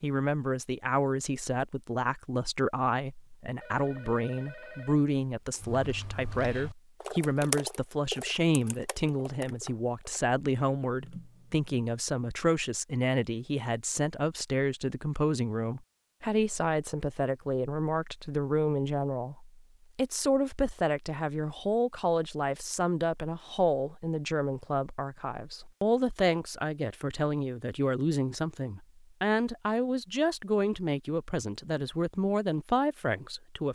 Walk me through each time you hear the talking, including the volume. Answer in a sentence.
You can hear the talking from 0.0 to 33.7 s, at a steady volume.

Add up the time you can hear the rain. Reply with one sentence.
You can't hear the rain here.